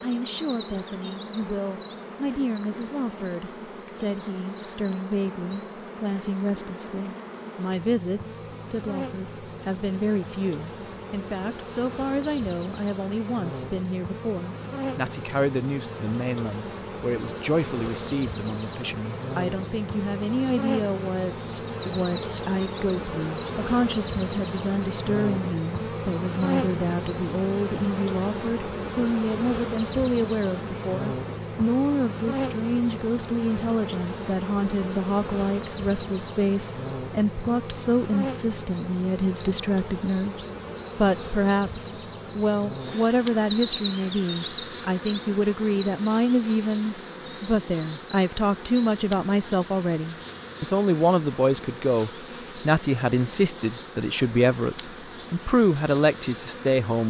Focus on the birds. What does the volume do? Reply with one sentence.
The volume of the birds goes up.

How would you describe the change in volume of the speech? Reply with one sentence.
The volume of the speech goes up.